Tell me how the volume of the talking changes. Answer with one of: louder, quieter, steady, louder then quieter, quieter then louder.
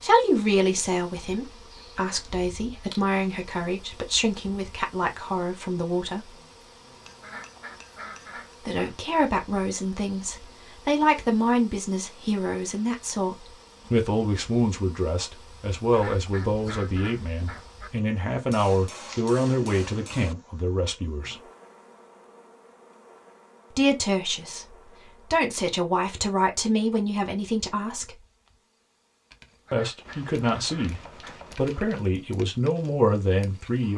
steady.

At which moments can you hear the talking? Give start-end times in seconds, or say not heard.
0.0-6.3, 8.6-21.4, 23.7-28.2, 29.7-33.9.